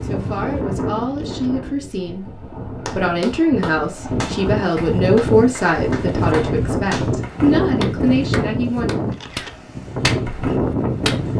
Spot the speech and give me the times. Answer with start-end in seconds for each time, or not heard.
0.0-8.9.